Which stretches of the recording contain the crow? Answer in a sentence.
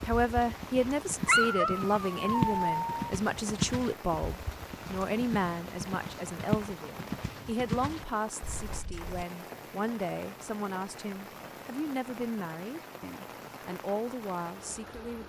The crow can't be heard in this clip.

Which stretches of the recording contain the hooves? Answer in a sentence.
You can hear the hooves from 0.0 to 9.2 s.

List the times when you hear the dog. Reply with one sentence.
You can hear the dog from 1.2 to 3.1 s.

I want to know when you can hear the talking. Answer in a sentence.
The talking can be heard from 0.0 to 15.2 s.